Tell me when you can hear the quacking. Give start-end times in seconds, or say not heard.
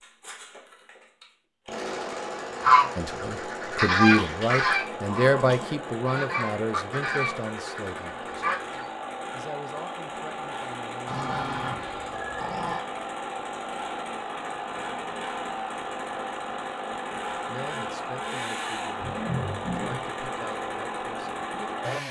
2.6-8.8.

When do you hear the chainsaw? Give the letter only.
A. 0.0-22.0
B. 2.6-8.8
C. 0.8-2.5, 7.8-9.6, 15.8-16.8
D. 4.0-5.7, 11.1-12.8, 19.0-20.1
A.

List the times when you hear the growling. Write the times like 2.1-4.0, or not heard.
4.0-5.7, 11.1-12.8, 19.0-20.1.